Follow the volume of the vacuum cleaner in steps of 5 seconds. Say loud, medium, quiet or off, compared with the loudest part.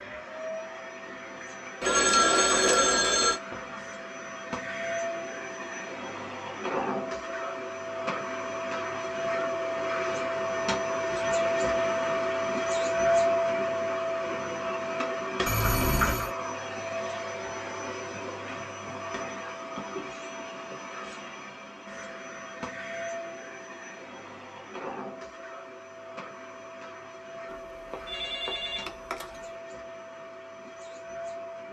medium, medium, loud, medium, quiet, quiet, quiet.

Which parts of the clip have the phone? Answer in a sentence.
The phone can be heard from 1.8 to 3.4 s, from 15.4 to 16.3 s and from 27.5 to 29.6 s.